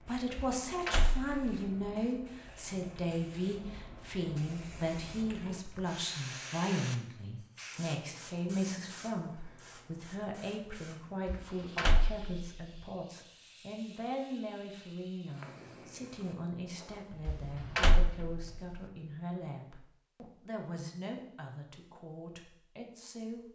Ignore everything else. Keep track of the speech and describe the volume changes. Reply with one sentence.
The volume of the speech goes down.